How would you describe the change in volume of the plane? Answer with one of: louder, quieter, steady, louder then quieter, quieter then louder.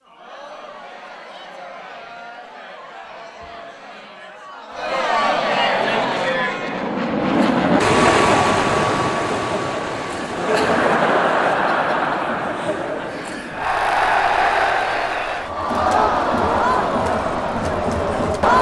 louder then quieter.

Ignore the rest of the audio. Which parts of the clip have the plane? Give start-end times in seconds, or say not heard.
5.8-11.6.